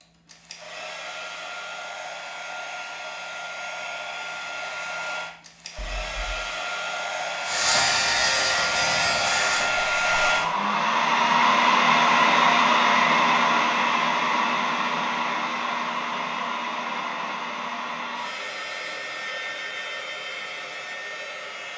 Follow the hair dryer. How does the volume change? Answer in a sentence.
The volume of the hair dryer goes up, then down.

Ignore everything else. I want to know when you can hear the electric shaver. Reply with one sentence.
The electric shaver can be heard from 7.5 to 10.5 s.